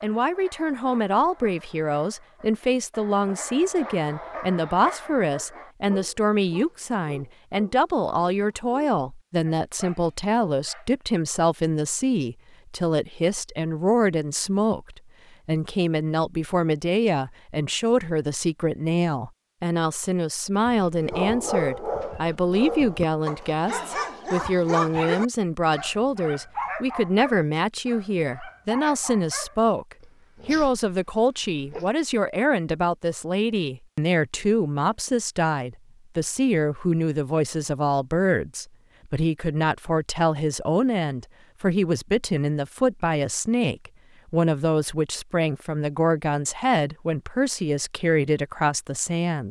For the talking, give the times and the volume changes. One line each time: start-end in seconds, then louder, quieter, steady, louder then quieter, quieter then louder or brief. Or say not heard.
0.0-49.4 steady.